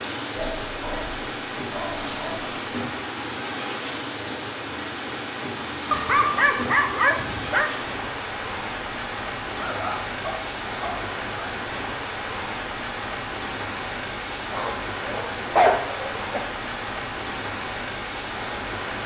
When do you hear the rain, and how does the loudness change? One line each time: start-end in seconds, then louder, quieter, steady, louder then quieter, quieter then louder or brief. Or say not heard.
0.0-19.0 steady.